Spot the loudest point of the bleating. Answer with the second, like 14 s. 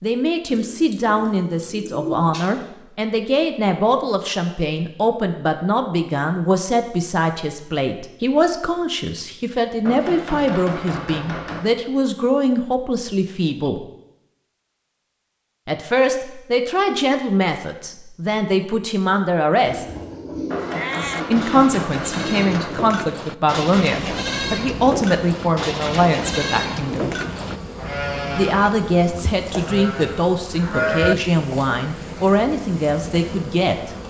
31 s.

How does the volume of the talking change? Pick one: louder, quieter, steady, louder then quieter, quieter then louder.
steady.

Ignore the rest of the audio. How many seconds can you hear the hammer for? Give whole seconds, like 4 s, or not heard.
4 s.